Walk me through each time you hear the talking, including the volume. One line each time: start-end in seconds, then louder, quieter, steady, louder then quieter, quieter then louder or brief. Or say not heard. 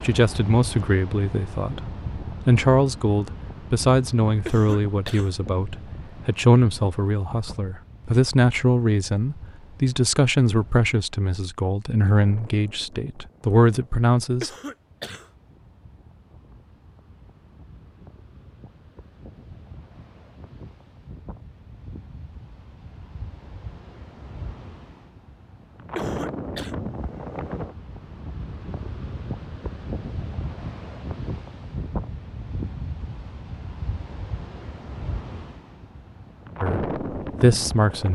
0.0-14.5 steady
36.6-38.1 brief.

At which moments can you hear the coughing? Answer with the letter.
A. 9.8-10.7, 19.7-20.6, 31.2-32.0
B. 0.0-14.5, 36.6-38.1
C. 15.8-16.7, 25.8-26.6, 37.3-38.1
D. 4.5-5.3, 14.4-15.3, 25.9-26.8
D.